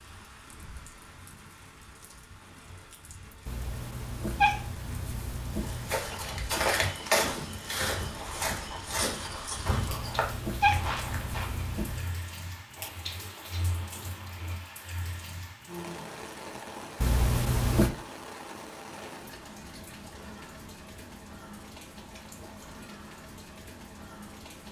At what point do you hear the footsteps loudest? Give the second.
7 s.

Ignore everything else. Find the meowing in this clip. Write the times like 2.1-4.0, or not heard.
3.5-6.2, 9.8-12.2, 17.0-17.9.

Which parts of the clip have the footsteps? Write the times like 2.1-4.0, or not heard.
5.6-11.6.